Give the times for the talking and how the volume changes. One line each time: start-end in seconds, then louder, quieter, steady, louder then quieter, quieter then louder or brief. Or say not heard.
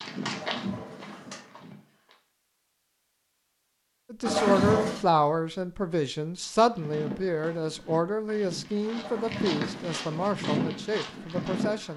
4.1-11.9 quieter.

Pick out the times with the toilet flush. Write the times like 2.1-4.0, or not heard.
0.3-1.5, 4.2-5.0, 8.9-10.3.